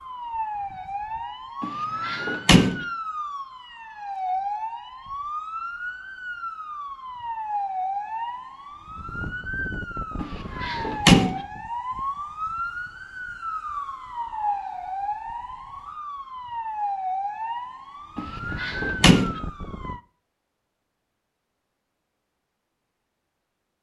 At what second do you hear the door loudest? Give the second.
11 s.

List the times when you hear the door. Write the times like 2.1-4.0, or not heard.
1.6-2.9, 10.2-11.4, 18.1-19.4.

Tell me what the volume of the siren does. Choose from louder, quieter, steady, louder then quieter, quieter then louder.
steady.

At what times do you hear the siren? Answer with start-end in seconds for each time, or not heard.
0.0-20.0.